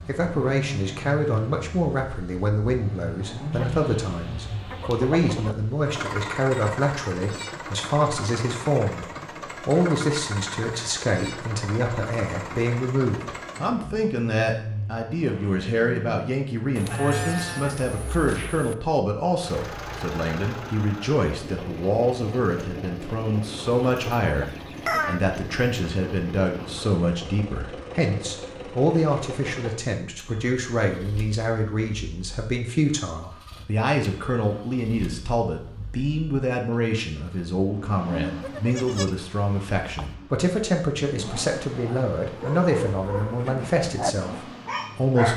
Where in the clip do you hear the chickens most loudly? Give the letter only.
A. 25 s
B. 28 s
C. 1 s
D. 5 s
A.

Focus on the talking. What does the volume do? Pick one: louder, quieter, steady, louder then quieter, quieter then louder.
steady.